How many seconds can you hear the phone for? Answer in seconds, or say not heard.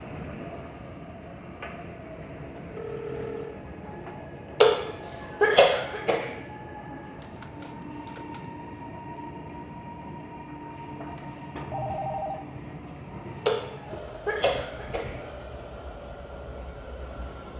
3 s.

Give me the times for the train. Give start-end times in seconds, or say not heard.
0.0-17.5.